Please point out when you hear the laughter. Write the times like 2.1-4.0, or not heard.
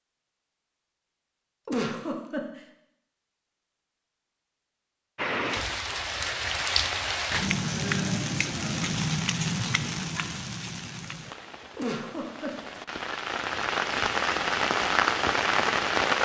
1.6-2.6, 11.8-12.7.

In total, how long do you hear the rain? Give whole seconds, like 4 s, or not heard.
11 s.